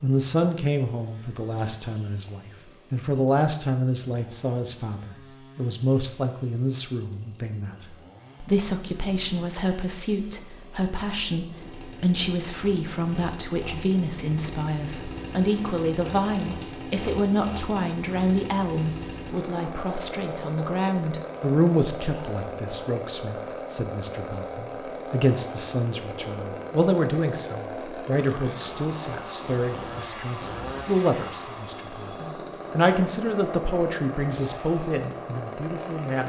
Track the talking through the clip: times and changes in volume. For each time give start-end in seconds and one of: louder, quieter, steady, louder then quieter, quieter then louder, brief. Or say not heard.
0.0-36.2 steady.